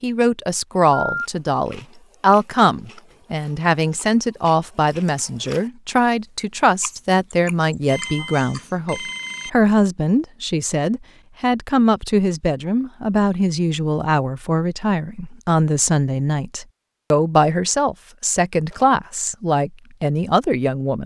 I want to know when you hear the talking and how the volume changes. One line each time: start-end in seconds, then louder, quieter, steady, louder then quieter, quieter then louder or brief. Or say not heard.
0.0-21.0 steady.